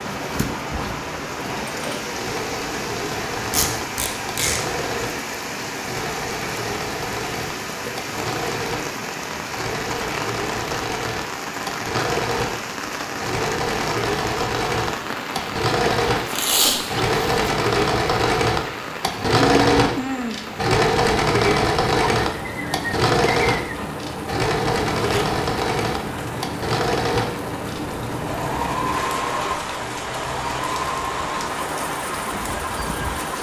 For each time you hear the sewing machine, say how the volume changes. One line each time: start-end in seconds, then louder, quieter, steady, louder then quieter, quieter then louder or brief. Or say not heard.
0.0-33.3 louder then quieter.